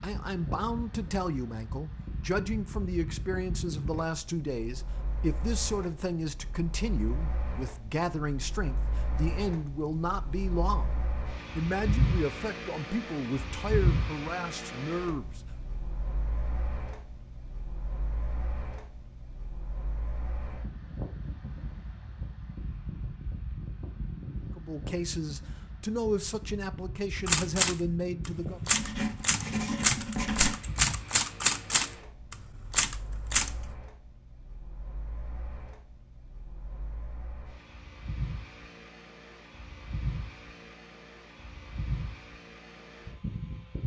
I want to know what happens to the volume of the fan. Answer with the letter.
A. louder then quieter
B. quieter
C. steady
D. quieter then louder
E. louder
A.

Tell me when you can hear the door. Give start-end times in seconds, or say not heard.
not heard.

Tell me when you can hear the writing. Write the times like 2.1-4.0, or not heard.
28.7-30.6.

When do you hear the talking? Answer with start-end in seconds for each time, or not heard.
0.0-15.4, 24.6-28.6.